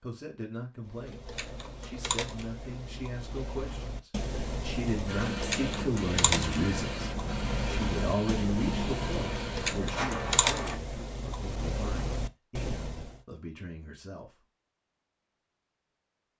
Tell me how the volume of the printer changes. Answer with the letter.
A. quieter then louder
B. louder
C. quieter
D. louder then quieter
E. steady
E.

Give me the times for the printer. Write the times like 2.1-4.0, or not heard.
5.0-10.8.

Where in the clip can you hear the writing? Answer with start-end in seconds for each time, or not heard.
not heard.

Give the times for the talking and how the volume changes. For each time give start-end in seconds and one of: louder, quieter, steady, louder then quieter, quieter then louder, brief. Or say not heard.
0.0-14.3 louder then quieter.